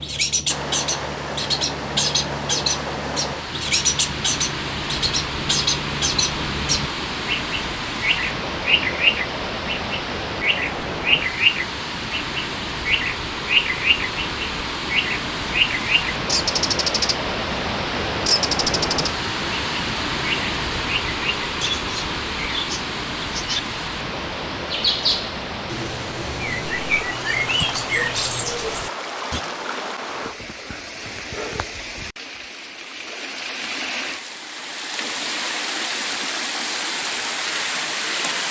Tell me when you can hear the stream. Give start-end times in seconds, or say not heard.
0.0-38.4.